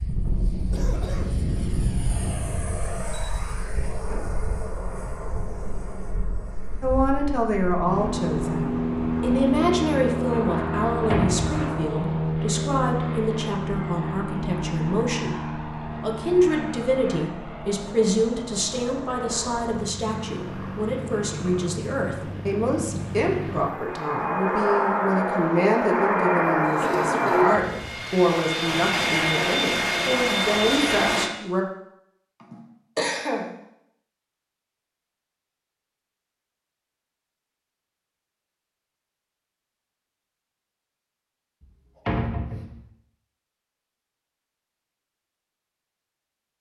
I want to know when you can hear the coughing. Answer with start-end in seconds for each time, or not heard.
0.6-1.3, 26.6-27.4, 32.4-33.5.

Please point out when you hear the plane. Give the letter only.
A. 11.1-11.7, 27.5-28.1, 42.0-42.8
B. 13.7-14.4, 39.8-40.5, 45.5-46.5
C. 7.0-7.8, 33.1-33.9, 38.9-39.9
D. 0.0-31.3
D.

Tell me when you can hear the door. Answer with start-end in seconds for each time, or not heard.
11.1-11.7, 27.5-28.1, 42.0-42.8.